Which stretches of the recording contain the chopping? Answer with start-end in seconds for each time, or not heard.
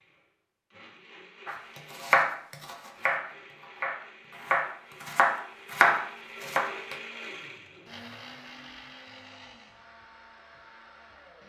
1.4-7.0.